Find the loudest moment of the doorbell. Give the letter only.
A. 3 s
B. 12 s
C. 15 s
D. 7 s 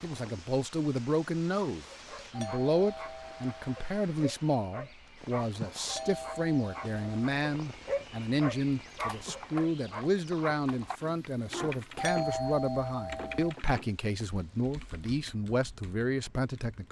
B.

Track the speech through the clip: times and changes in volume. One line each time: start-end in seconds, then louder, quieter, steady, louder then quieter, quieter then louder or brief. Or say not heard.
0.0-16.8 steady.